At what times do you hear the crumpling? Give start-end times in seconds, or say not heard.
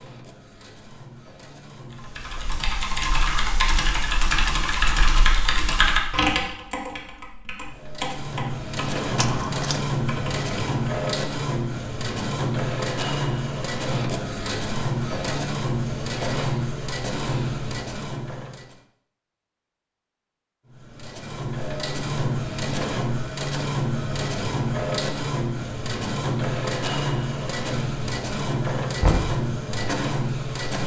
9.2-9.8.